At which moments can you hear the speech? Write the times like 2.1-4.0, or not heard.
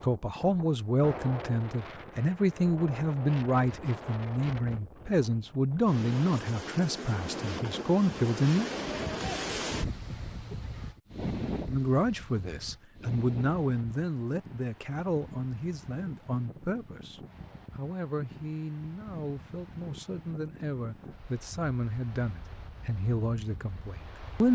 0.0-8.7, 11.7-24.5.